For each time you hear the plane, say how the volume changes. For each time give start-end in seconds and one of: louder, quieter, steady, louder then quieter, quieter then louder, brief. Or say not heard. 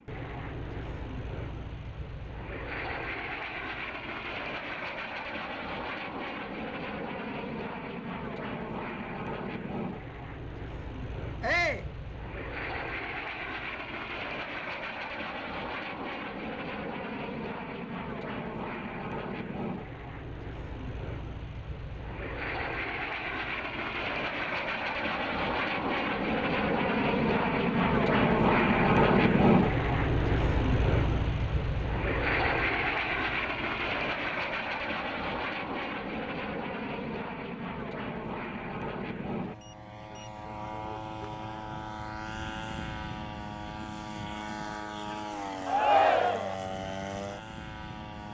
0.0-48.2 louder then quieter.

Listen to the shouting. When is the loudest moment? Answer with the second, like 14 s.
46 s.